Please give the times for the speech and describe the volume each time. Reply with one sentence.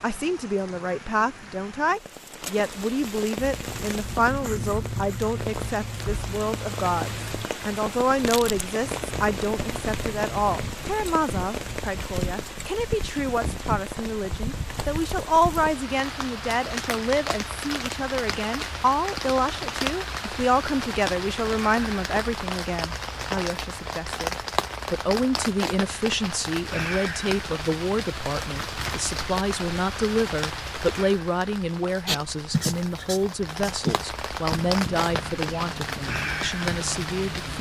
The speech can be heard from 0.0 to 37.5 s, at a steady volume.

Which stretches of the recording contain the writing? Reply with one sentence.
You can hear the writing from 3.4 to 11.8 s and from 32.0 to 37.5 s.